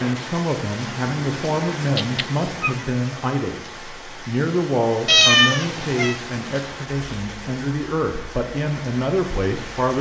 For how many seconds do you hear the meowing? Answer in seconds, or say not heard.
3 s.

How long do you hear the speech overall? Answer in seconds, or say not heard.
10 s.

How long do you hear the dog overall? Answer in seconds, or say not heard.
not heard.